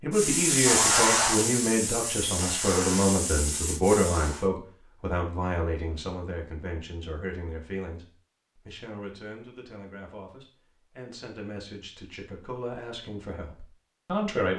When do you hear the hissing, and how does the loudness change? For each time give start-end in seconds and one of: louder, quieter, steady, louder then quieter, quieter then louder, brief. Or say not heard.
0.1-4.5 quieter.